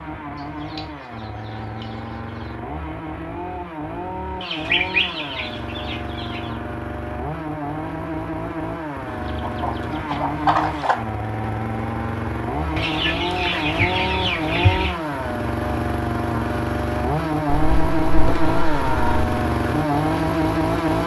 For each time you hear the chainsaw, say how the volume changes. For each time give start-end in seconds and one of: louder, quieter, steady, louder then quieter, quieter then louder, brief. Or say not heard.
0.0-21.0 louder.